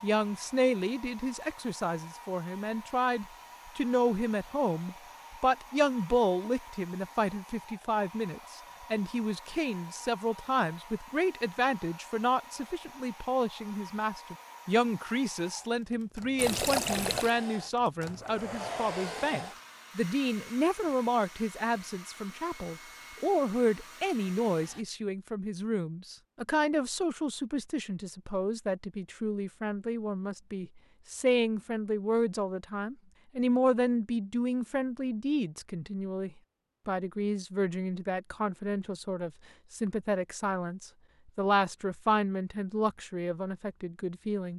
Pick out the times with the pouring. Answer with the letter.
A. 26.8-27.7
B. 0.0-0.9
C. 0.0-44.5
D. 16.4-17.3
D.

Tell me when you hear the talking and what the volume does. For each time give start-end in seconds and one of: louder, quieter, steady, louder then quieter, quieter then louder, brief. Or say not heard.
0.0-44.5 steady.